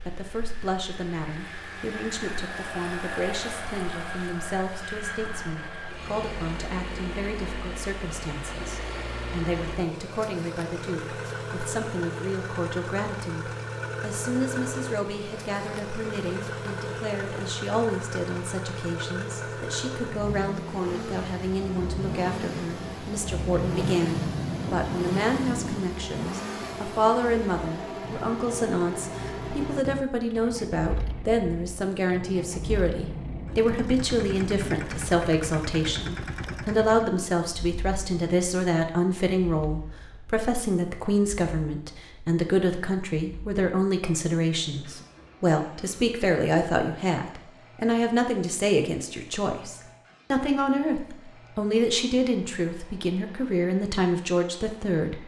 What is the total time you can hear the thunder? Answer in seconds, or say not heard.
9 s.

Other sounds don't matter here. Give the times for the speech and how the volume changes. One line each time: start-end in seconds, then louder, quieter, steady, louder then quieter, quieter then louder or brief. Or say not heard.
0.1-55.2 louder.